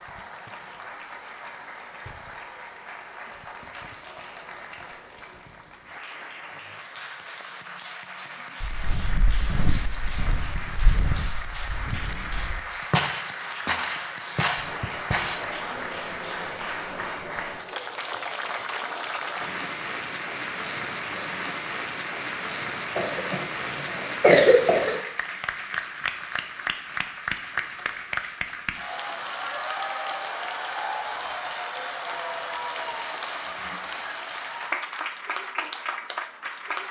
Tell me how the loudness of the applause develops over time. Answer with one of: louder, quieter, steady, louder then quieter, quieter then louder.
louder.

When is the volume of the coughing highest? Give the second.
24 s.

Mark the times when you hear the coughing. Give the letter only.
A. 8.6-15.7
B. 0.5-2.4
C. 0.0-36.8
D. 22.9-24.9
D.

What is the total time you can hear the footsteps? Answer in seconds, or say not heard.
7 s.